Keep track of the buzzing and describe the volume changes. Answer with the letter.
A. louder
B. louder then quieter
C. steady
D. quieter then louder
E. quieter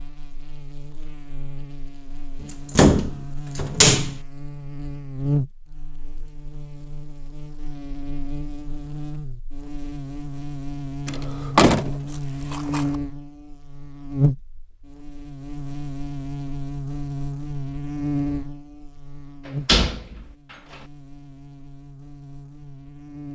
B.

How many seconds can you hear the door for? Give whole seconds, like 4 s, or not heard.
4 s.